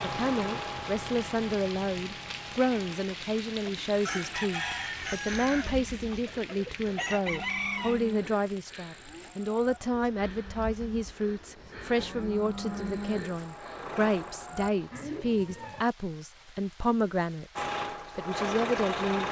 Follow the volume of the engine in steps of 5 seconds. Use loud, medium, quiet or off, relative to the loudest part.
medium, off, medium, loud.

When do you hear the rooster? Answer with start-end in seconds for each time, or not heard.
3.9-8.1.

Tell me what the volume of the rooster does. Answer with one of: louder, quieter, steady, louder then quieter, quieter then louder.
quieter then louder.